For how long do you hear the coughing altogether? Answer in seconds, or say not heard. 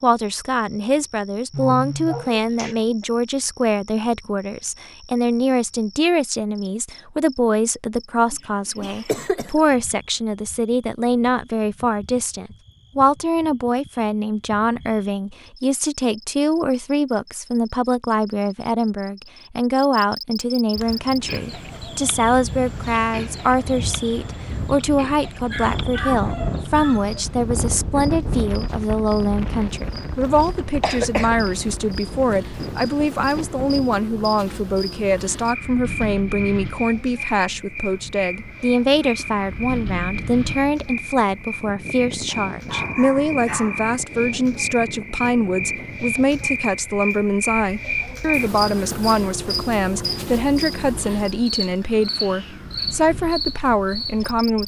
2 s.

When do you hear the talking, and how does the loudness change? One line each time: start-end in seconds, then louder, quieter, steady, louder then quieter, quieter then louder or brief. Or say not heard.
0.0-54.6 steady.